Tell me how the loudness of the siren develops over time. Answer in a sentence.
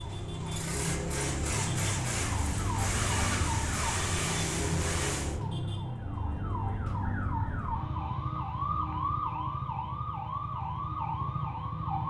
The volume of the siren stays about the same.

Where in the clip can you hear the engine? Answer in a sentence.
The engine can be heard from 0.0 to 5.4 s.